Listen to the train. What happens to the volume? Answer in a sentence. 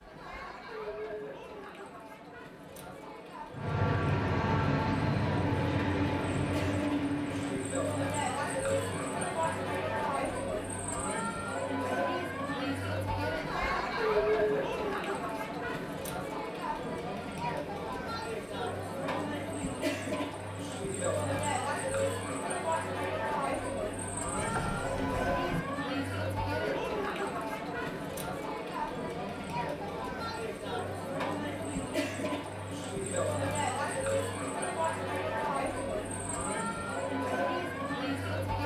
The volume of the train goes down.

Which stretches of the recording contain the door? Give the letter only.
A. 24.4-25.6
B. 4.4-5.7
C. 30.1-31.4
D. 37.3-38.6
A.